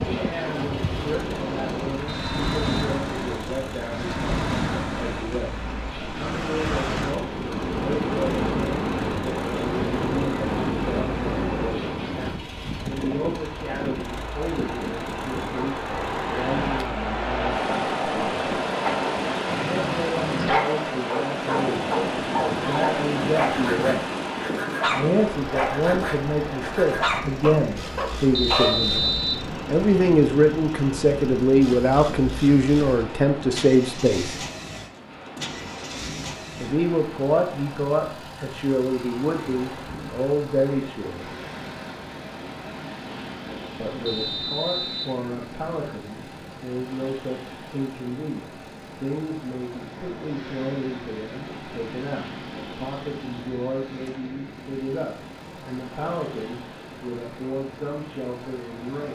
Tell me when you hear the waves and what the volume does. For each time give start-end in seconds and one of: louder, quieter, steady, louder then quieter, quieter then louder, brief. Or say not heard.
0.0-59.1 quieter.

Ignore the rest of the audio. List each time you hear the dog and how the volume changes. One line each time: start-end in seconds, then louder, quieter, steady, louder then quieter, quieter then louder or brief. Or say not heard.
18.8-28.9 steady.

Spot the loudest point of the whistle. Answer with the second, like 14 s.
29 s.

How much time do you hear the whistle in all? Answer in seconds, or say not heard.
3 s.